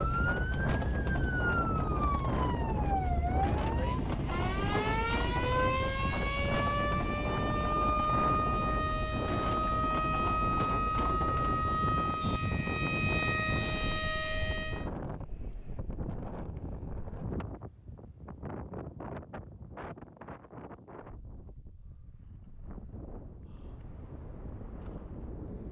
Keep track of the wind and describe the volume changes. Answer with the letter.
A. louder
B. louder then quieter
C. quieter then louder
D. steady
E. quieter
E.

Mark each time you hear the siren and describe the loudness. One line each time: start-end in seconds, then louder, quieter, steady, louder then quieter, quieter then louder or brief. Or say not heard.
0.0-14.9 steady.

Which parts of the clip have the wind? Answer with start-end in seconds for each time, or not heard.
0.0-25.6.